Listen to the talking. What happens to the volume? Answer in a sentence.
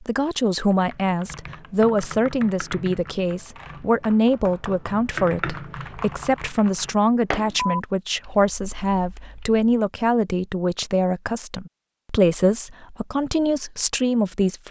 The volume of the talking stays about the same.